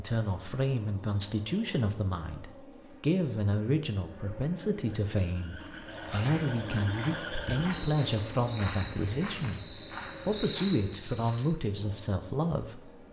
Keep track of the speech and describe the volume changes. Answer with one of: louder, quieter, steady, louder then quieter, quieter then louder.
steady.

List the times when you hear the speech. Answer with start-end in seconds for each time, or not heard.
0.0-13.0.